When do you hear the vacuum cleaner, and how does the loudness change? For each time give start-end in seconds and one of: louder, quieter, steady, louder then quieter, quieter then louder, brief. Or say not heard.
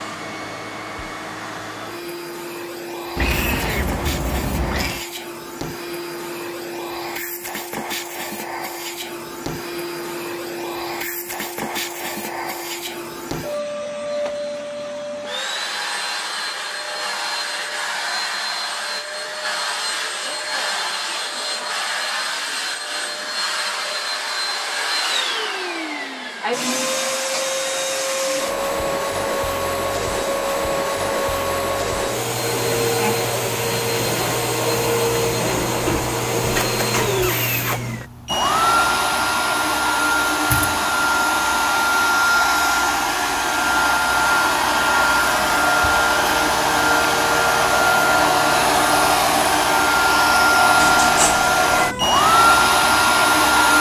0.0-53.7 louder.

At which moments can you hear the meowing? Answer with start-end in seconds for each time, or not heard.
3.1-5.0, 50.8-52.1.